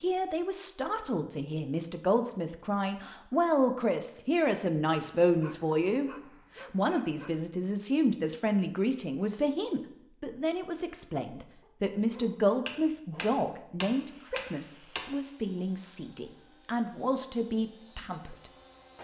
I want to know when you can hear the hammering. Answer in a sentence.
You can hear the hammering from 12.7 to 15.2 s.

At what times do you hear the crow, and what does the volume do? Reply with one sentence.
You can't hear the crow here.